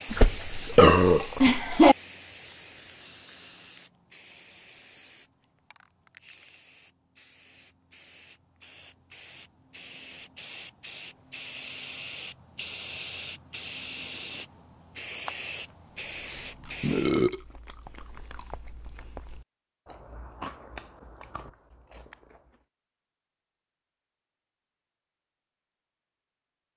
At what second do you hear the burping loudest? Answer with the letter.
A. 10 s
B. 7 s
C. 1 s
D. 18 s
C.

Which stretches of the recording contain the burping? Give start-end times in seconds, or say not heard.
0.1-1.9, 16.8-17.4.